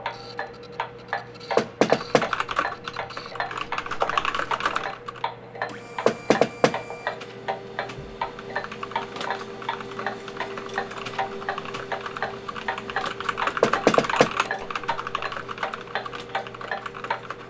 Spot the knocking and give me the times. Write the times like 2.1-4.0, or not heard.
1.6-2.3, 6.0-6.8, 13.6-14.3.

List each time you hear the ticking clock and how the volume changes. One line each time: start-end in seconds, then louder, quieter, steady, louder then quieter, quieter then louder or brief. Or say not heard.
0.0-17.4 steady.